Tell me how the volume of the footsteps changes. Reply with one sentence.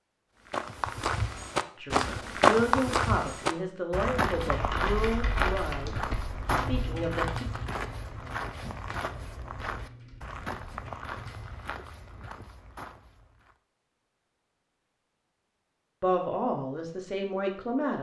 The loudness of the footsteps goes down.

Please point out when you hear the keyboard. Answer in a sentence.
You can hear the keyboard from 4.2 to 11.6 s.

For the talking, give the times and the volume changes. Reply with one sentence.
The talking can be heard from 1.8 to 7.5 s, getting quieter; and briefly from 16.0 to 17.9 s.